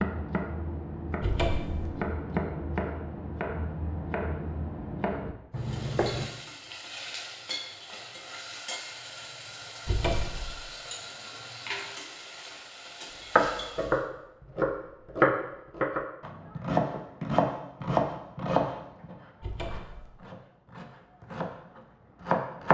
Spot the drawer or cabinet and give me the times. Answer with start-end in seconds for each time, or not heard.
1.2-1.9, 9.8-10.6, 19.4-20.1.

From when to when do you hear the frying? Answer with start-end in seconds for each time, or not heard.
5.5-14.1.